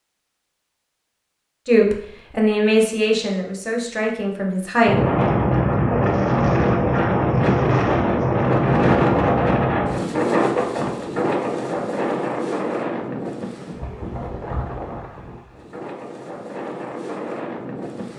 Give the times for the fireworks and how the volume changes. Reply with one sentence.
You can't hear the fireworks here.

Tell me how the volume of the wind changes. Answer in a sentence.
The loudness of the wind goes down.